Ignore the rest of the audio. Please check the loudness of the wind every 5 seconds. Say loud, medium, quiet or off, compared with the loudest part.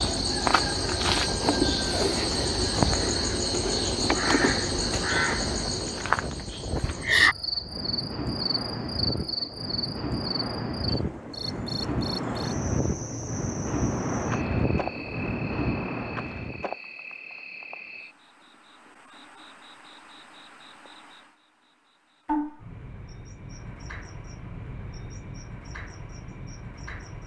medium, medium, loud, loud, off, off.